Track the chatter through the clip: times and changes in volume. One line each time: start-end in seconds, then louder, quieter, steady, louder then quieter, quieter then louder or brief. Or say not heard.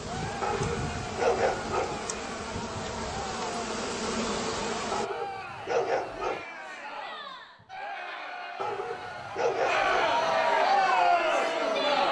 0.0-12.0 louder.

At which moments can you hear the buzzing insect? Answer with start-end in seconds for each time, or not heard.
0.0-5.1.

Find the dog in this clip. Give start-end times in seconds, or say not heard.
0.4-2.4, 4.9-6.5, 8.6-10.3.